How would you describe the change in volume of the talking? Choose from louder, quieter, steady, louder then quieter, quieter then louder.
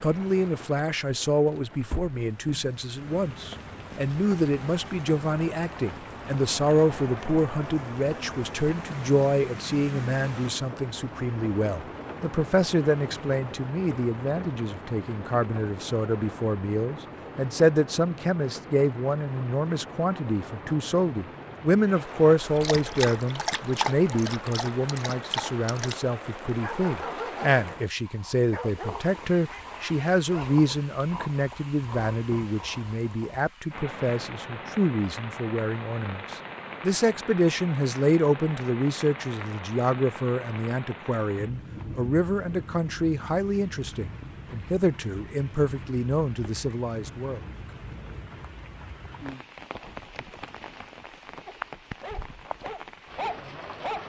steady.